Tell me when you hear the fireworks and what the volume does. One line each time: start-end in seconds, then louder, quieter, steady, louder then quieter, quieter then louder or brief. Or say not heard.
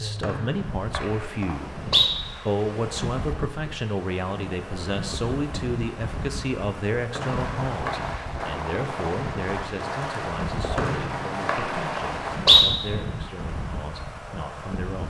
7.2-12.7 steady.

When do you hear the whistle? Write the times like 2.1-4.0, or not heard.
0.2-2.1, 7.2-8.2, 10.8-12.7.